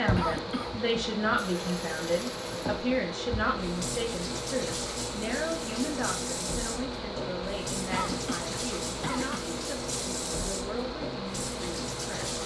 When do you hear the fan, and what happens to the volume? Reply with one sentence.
The fan can be heard from 0.0 to 12.4 s, at a steady volume.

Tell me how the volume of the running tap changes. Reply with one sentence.
The loudness of the running tap stays about the same.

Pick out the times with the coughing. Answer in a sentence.
You can hear the coughing from 0.1 to 0.8 s and from 7.9 to 9.6 s.